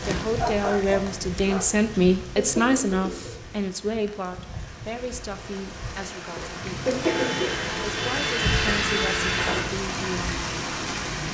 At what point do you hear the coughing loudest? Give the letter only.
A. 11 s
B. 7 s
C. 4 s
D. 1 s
B.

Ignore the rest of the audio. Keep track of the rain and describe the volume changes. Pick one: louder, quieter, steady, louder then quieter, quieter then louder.
quieter then louder.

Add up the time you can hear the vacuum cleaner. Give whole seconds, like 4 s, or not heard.
3 s.